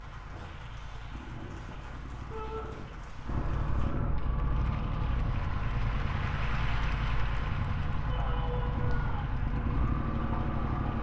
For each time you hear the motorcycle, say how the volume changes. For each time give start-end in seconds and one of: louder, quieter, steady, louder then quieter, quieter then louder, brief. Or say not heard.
0.0-10.9 louder.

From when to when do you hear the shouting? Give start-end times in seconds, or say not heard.
2.3-2.7, 8.1-9.3.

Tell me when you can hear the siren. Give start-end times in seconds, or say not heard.
not heard.